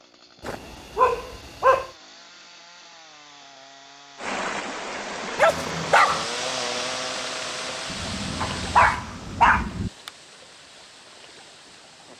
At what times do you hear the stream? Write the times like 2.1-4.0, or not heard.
4.2-12.1.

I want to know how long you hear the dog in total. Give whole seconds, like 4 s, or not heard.
4 s.